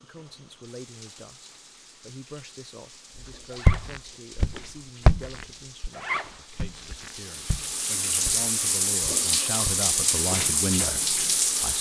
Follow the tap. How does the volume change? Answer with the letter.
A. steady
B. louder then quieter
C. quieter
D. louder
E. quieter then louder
D.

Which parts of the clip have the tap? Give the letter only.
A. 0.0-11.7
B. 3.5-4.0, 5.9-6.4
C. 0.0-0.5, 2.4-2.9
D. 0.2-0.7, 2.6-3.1
A.